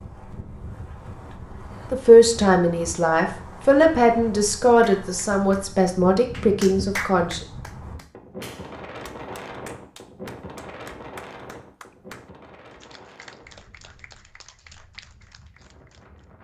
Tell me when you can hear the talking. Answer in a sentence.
You can hear the talking from 1.9 to 7.4 s.